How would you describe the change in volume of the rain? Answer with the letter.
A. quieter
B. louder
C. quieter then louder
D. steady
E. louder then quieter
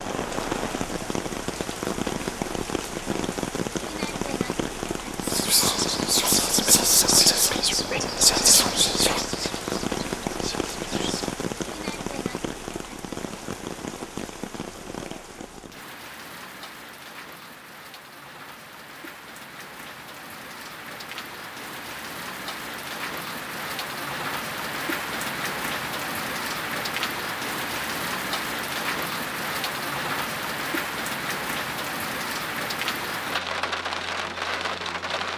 C.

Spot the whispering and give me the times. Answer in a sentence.
You can hear the whispering from 5.2 to 11.3 s.